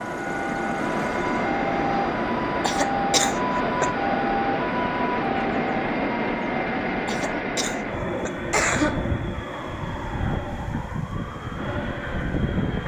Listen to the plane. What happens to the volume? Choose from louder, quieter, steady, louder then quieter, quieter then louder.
quieter.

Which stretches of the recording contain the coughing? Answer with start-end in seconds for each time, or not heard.
2.6-3.9, 7.0-8.9.